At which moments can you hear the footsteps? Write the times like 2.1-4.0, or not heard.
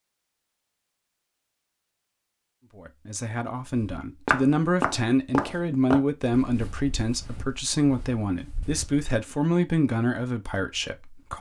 3.7-9.1.